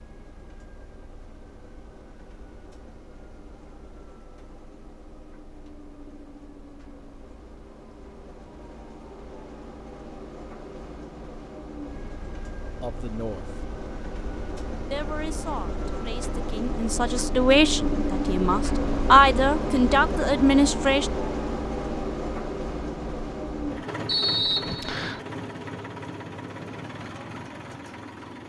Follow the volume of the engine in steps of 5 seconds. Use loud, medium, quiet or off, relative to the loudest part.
quiet, quiet, medium, loud, loud, medium.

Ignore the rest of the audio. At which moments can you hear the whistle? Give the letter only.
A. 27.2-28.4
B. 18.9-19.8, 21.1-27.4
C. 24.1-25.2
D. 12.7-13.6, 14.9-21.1
C.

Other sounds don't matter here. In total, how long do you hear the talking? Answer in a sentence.
The talking can be heard for 7 seconds in total.